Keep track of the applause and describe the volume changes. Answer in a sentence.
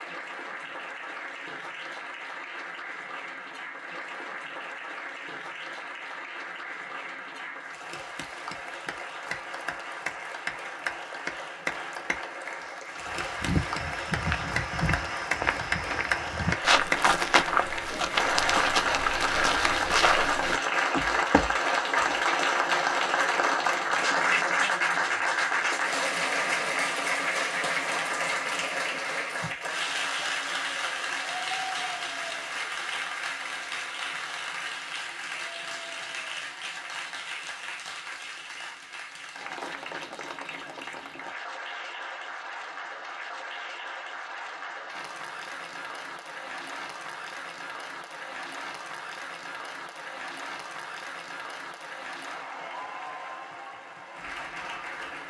The volume of the applause goes up, then down.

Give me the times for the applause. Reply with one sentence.
The applause can be heard from 0.0 to 55.2 s.